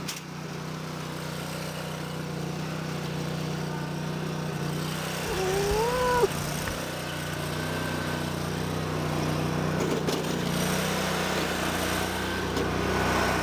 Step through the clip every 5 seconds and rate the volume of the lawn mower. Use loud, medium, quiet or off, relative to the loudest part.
medium, loud, loud.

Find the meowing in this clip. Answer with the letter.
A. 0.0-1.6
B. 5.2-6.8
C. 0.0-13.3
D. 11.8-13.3
B.